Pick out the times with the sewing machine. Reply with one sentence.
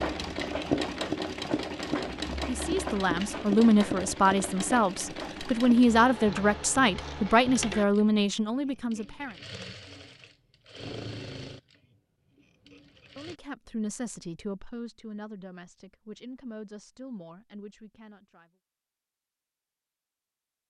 The sewing machine can be heard from 0.0 to 13.4 s.